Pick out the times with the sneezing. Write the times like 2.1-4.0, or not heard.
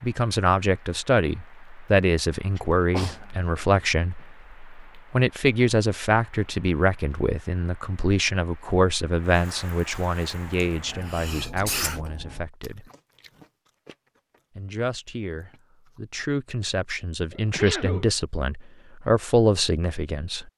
2.5-3.9, 10.6-12.0, 17.3-18.1.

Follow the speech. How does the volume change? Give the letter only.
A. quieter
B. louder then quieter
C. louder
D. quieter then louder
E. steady
D.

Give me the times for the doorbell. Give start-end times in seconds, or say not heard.
not heard.